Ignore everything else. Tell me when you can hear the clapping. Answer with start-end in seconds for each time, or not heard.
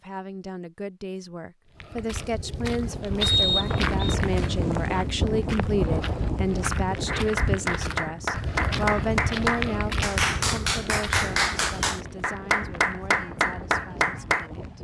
7.0-14.4.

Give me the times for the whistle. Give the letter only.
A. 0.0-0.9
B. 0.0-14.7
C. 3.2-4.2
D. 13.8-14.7
C.